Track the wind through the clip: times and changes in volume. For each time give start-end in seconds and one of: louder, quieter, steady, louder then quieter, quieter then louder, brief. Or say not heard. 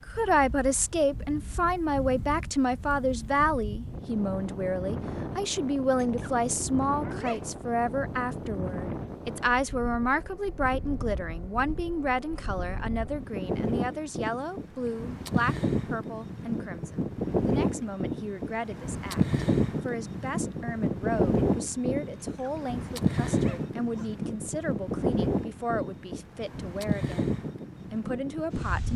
0.0-28.9 louder.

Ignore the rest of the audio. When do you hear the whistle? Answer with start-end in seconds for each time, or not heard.
not heard.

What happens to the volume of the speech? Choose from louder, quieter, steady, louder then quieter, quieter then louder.
quieter.